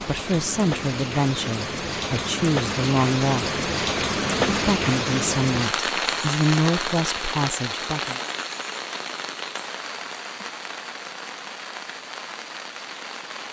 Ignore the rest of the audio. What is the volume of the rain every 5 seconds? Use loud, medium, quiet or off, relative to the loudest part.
loud, loud, medium.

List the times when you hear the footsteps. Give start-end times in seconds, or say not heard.
not heard.